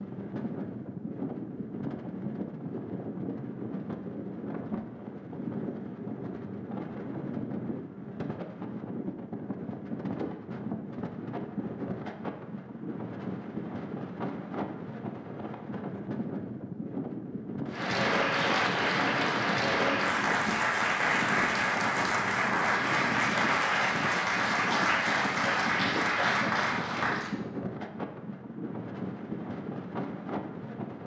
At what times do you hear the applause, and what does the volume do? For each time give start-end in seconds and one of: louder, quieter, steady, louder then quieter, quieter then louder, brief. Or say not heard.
17.6-27.4 steady.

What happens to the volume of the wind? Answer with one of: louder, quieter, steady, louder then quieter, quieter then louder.
steady.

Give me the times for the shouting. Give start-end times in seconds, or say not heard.
not heard.